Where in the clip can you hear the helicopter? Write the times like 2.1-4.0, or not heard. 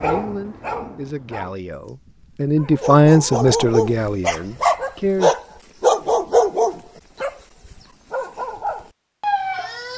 not heard.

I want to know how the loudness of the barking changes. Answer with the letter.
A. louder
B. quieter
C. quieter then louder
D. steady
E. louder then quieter
E.